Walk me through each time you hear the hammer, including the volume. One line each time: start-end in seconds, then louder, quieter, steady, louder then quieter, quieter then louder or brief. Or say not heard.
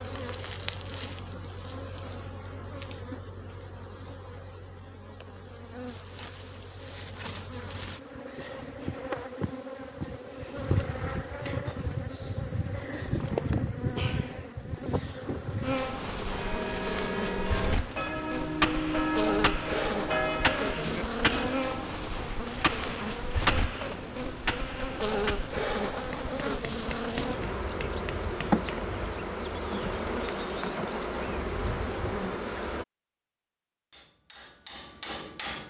18.1-28.8 quieter
33.9-35.6 brief.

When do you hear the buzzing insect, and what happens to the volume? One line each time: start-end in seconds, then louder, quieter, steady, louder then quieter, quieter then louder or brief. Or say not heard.
0.0-32.9 louder.